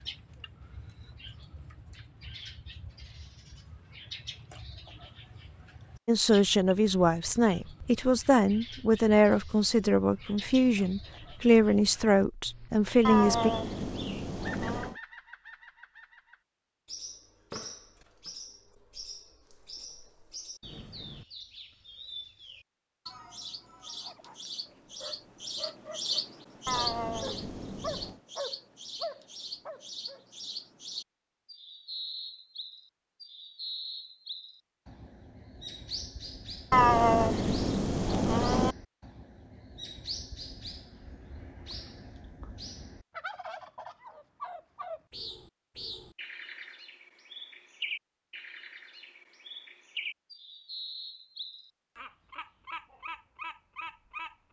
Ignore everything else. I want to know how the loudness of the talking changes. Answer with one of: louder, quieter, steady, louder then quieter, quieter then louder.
steady.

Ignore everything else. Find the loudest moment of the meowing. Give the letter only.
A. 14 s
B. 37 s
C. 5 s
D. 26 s
B.